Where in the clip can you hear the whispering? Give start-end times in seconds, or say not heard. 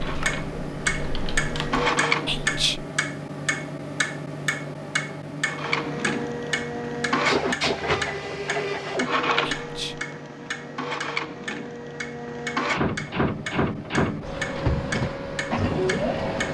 2.2-2.9, 9.6-10.1.